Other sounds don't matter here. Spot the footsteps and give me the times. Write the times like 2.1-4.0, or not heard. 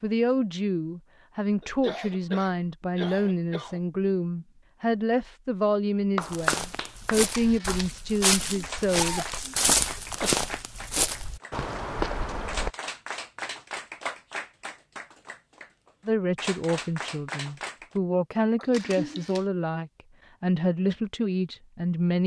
6.2-12.7.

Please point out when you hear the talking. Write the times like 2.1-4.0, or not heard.
0.0-9.4, 16.1-22.2.